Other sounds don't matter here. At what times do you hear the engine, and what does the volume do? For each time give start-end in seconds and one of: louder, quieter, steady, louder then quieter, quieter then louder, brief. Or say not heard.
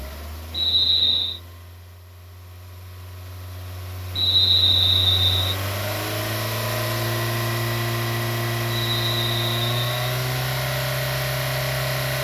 0.0-12.1 louder.